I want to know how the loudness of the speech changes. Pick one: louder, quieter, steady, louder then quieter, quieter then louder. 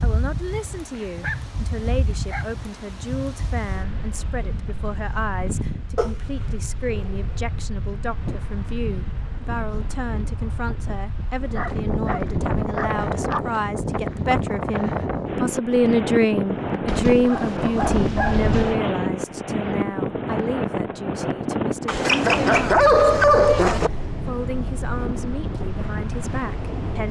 louder then quieter.